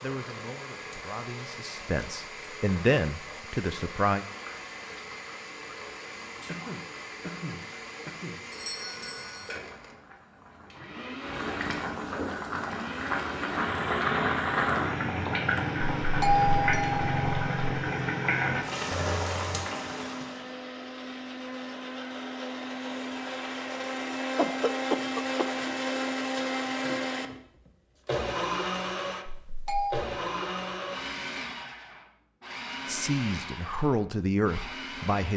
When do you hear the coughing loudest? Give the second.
25 s.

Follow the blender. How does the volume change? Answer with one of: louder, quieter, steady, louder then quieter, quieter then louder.
louder.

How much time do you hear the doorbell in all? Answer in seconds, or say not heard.
3 s.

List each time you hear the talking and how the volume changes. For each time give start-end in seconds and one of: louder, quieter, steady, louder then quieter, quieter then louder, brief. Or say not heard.
0.0-4.2 louder then quieter
32.9-35.3 brief.